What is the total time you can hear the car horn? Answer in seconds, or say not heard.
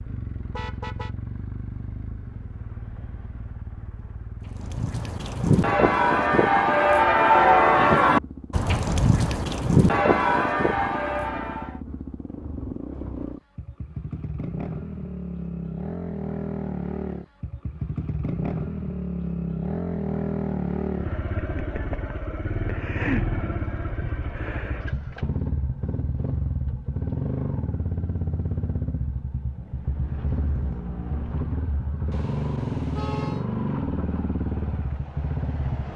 2 s.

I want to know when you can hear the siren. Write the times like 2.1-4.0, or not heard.
not heard.